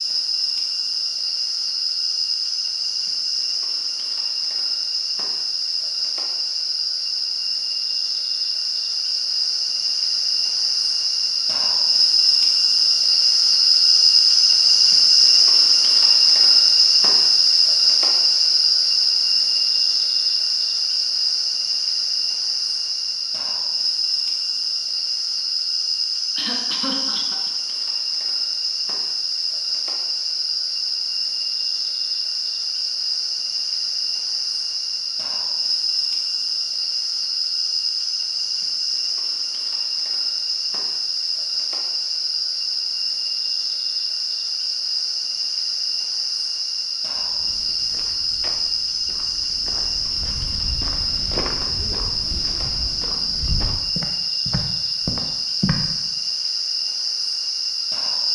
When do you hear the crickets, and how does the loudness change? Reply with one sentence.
You can hear the crickets from 0.0 to 58.3 s, getting louder then quieter.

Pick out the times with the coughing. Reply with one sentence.
The coughing can be heard from 26.4 to 27.5 s.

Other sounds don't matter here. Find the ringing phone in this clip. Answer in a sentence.
You can't hear the ringing phone here.